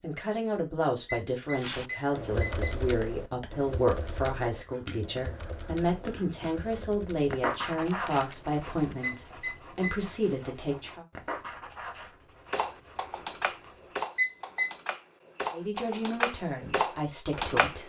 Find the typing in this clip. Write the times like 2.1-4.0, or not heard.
1.6-8.9, 12.5-17.8.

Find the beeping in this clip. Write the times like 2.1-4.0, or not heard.
1.1-2.8, 9.0-9.9, 14.2-14.7.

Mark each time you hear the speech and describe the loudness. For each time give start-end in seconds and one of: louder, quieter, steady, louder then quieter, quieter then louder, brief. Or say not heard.
0.0-11.1 steady
15.5-17.8 brief.